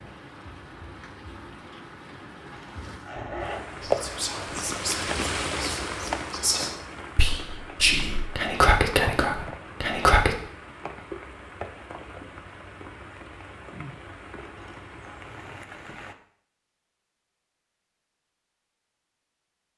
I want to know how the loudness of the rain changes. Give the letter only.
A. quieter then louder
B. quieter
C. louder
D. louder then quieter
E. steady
D.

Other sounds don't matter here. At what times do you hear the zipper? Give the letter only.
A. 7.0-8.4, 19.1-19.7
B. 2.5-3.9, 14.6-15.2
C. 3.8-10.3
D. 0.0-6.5
B.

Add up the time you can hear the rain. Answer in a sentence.
You can hear the rain for 16 seconds altogether.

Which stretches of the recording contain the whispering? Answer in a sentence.
You can hear the whispering from 3.8 to 10.3 s.